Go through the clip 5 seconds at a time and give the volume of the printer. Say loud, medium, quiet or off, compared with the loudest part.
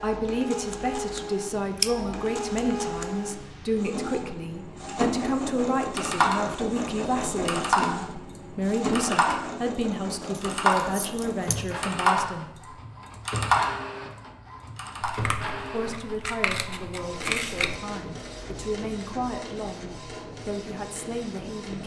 loud, loud, medium, medium, medium.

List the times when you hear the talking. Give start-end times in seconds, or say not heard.
0.0-12.5, 15.7-21.8.